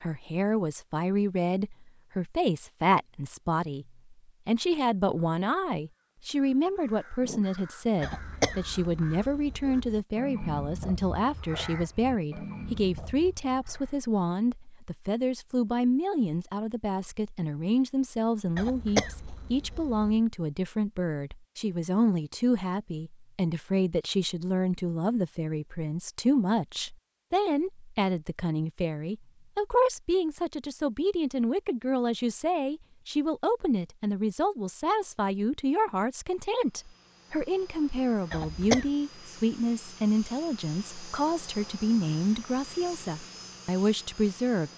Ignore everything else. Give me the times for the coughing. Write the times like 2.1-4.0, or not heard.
8.0-10.0, 18.6-20.2, 38.3-38.9.